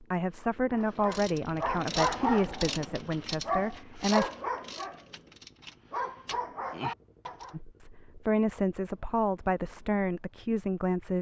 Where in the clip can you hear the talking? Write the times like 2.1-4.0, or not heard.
0.0-4.3, 7.5-11.1.